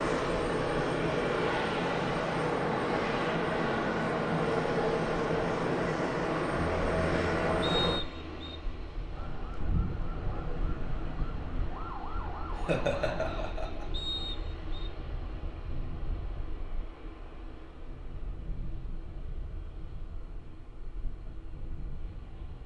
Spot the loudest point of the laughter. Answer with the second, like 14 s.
13 s.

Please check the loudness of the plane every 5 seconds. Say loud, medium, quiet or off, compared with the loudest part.
loud, loud, quiet, quiet, quiet.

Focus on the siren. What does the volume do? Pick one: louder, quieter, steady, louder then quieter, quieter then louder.
steady.